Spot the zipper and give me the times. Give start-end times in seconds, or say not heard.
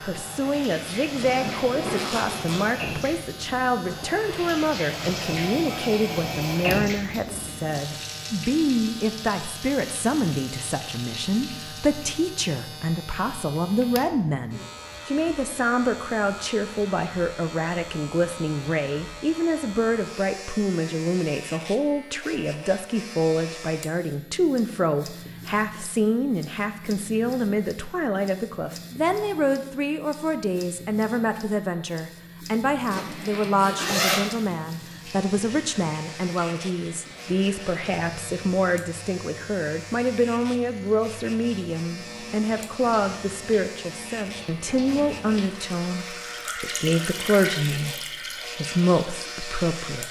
1.2-2.7, 32.9-34.2.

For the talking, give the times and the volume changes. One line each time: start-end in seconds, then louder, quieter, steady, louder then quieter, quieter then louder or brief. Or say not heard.
0.0-50.0 steady.